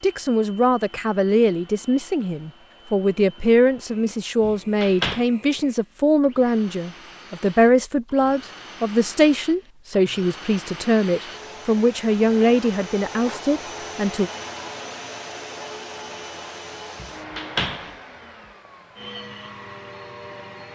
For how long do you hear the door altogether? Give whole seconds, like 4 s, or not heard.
2 s.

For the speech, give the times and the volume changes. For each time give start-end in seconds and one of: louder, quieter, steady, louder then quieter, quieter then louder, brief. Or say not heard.
0.0-14.3 steady.